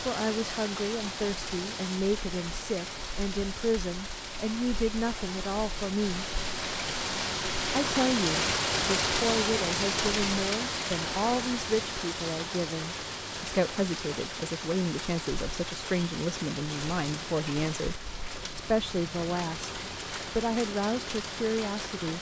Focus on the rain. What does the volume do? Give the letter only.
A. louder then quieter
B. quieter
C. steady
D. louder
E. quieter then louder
A.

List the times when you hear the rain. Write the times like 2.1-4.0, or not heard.
0.0-22.1.